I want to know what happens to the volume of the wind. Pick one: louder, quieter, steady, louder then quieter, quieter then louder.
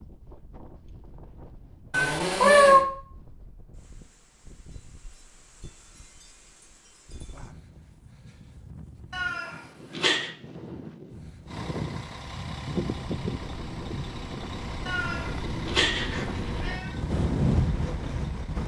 louder.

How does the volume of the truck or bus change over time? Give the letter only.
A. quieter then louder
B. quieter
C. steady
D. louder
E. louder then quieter
B.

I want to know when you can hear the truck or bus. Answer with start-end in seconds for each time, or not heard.
11.4-18.6.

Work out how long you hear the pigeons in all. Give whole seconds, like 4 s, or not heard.
not heard.